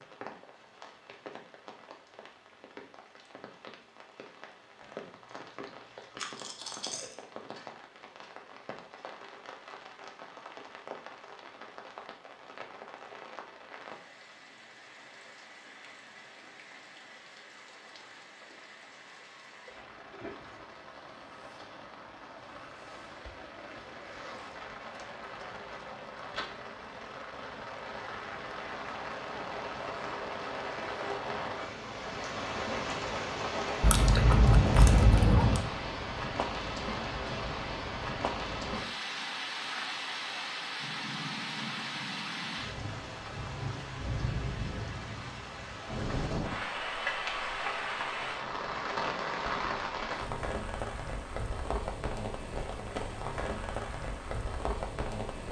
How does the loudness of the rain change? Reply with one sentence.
The loudness of the rain goes up.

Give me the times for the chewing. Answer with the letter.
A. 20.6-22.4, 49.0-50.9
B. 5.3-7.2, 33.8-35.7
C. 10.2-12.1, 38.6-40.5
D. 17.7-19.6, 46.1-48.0
B.